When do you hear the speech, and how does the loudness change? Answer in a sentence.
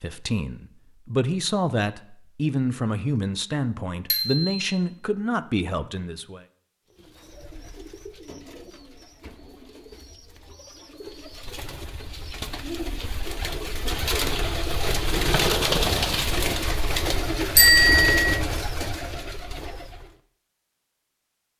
The speech can be heard from 0.0 to 6.5 s, at a steady volume.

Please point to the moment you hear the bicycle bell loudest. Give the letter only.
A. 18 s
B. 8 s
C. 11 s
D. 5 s
A.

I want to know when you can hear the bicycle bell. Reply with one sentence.
The bicycle bell can be heard from 4.1 to 4.6 s and from 17.6 to 18.4 s.